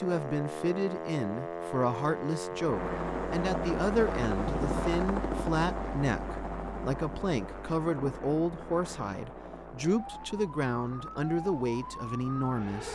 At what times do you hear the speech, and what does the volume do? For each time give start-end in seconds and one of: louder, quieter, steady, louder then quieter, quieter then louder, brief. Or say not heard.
0.0-12.9 steady.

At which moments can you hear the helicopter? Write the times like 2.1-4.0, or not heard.
2.5-12.9.